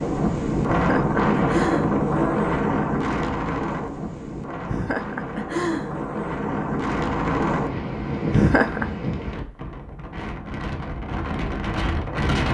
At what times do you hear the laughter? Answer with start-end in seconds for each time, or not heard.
0.7-2.5, 4.7-6.0, 8.3-8.8.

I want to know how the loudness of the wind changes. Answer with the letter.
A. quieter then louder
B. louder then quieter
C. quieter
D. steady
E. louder
C.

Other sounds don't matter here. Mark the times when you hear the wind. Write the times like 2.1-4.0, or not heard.
0.0-12.4.